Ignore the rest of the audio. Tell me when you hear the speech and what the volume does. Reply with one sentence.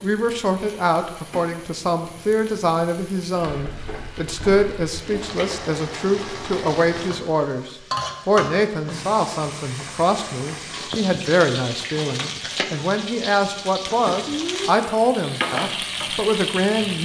The speech can be heard from 0.0 to 17.0 s, at a steady volume.